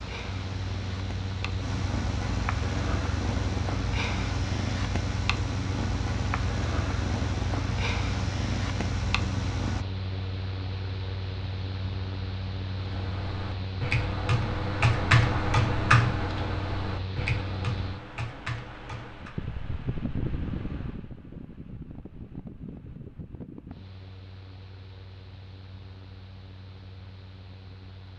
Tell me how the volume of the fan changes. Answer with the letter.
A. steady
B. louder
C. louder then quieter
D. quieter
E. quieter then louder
D.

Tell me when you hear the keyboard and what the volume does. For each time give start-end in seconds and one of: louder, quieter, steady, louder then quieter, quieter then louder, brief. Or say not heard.
12.8-19.4 louder then quieter.